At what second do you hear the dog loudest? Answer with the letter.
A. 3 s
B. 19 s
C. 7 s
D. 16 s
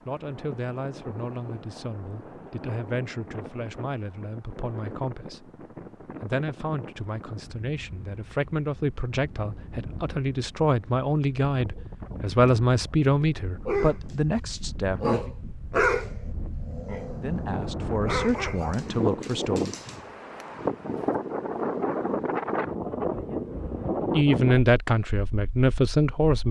D.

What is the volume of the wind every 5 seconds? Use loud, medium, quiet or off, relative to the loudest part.
quiet, quiet, quiet, medium, loud, off.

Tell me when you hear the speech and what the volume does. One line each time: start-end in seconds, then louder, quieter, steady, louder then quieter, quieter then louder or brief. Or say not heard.
0.1-15.3 louder
17.2-19.8 brief
24.1-26.4 brief.